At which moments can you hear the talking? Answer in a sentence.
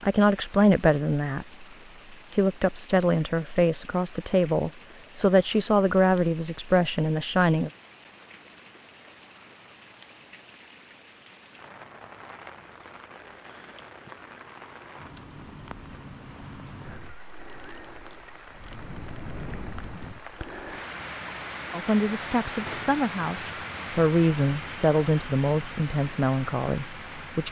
You can hear the talking from 0.0 to 7.7 s and from 21.7 to 27.4 s.